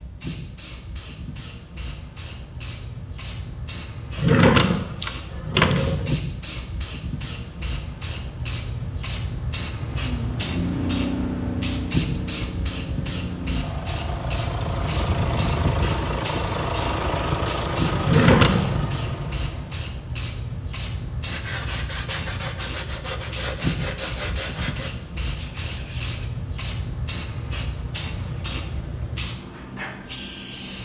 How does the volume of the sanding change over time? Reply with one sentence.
The volume of the sanding goes down.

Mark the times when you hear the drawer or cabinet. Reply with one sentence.
You can hear the drawer or cabinet from 4.2 to 6.2 s and from 18.0 to 18.8 s.